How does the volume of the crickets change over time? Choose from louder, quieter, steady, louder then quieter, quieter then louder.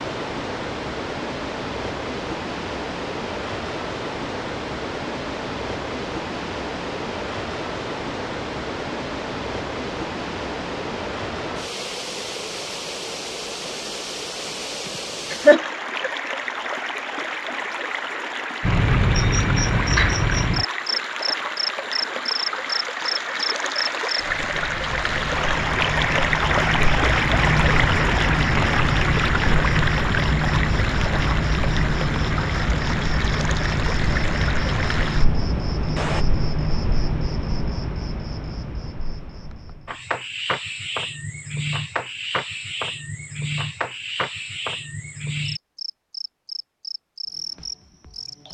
quieter.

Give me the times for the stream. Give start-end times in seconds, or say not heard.
0.0-36.2.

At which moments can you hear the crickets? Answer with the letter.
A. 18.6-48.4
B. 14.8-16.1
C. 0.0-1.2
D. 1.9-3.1
A.